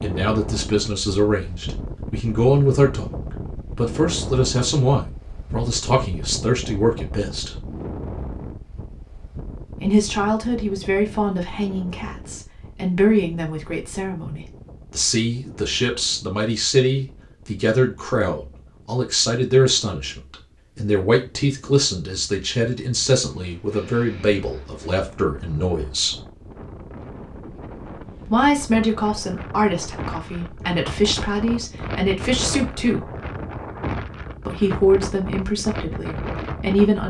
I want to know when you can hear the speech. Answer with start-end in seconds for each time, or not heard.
0.0-3.1, 3.8-7.5, 9.8-26.2, 28.2-33.1, 34.5-37.0.